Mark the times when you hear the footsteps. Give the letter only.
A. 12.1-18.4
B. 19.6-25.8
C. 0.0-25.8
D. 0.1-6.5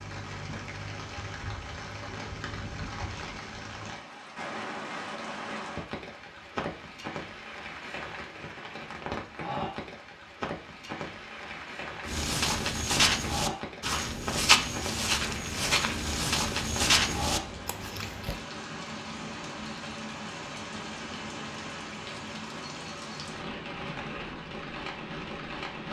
A.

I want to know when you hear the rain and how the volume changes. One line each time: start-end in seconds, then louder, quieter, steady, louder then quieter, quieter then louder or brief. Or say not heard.
0.0-25.8 steady.